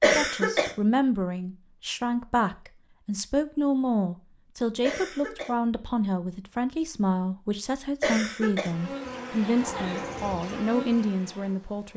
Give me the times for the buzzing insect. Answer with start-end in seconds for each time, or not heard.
8.5-11.9.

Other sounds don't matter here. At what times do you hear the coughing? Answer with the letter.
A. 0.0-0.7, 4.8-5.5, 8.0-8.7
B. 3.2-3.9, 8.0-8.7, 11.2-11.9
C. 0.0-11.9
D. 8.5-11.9
A.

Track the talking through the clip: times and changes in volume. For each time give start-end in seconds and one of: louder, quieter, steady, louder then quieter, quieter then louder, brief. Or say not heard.
0.0-11.9 steady.